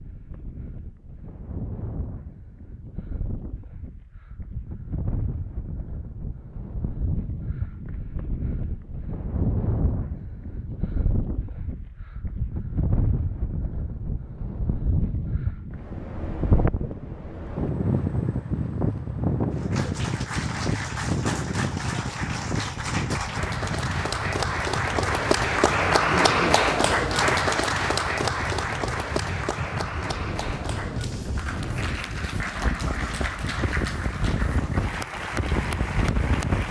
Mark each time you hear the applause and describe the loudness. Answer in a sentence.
You can hear the applause from 19.6 to 36.6 s, getting louder then quieter.